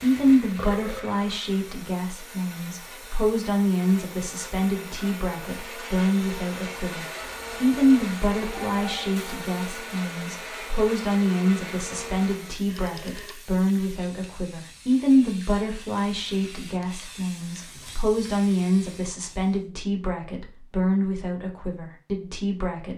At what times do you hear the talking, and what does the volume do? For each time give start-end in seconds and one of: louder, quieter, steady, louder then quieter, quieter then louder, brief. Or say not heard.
0.0-22.9 steady.